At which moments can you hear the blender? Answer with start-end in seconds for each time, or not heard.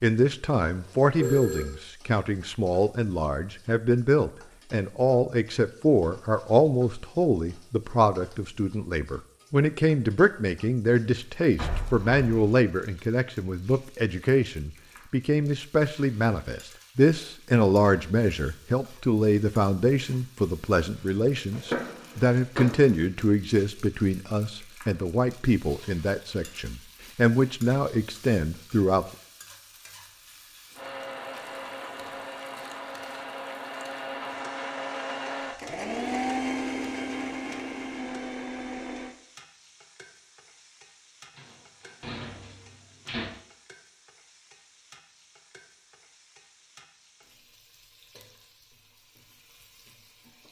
30.8-39.1.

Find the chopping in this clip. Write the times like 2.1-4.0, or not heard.
not heard.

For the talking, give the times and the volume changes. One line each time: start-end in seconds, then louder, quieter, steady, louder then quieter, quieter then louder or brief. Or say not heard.
0.0-29.1 steady.